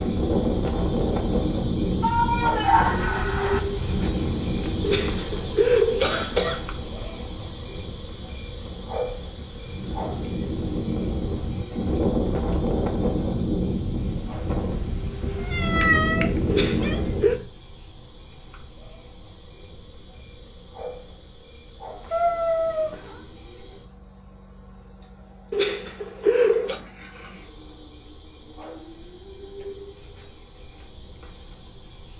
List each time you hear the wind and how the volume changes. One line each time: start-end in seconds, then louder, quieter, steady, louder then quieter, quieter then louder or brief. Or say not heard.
0.0-17.4 quieter then louder.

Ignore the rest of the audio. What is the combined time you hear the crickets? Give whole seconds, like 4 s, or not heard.
32 s.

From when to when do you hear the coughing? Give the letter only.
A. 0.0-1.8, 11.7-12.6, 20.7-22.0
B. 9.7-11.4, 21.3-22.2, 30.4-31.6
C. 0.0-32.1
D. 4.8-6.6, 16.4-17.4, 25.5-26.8
D.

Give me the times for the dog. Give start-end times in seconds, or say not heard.
not heard.